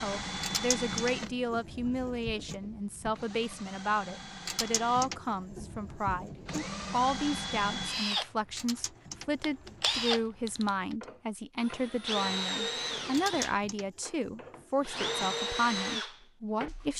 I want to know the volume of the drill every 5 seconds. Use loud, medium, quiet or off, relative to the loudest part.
medium, loud, loud, loud.